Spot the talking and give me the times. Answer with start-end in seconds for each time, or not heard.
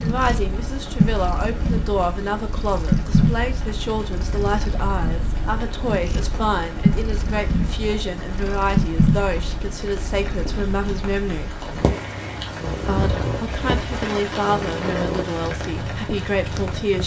0.0-11.7, 12.8-17.0.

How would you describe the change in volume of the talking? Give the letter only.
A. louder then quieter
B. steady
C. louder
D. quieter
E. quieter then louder
B.